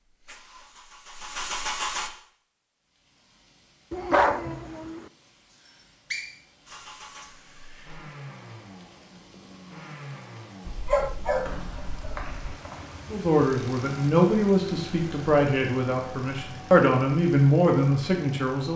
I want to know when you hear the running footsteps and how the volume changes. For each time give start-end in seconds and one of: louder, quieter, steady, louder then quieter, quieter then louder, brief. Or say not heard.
not heard.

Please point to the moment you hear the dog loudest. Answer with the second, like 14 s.
4 s.